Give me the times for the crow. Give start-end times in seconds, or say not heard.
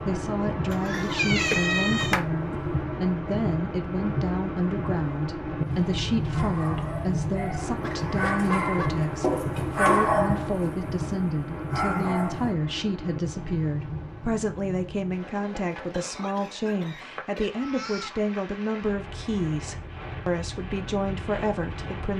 not heard.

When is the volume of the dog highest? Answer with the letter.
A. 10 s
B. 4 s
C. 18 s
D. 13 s
A.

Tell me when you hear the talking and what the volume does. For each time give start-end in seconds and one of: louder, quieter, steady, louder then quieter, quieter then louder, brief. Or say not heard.
0.0-22.1 steady.